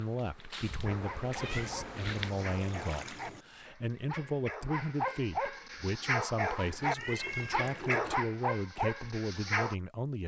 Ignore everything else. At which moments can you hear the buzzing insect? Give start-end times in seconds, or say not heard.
0.0-2.3.